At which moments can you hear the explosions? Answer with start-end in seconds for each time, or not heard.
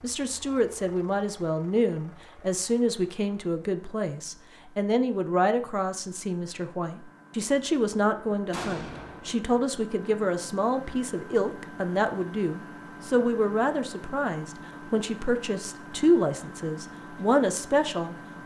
8.5-9.3.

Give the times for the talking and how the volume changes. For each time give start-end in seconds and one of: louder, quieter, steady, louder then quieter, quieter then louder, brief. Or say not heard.
0.0-18.1 steady.